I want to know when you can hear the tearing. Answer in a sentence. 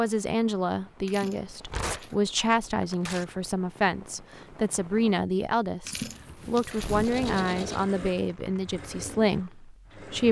You can hear the tearing from 1.6 to 3.2 s and from 6.8 to 7.2 s.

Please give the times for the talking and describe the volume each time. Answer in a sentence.
You can hear the talking from 0.0 to 10.2 s, at a steady volume.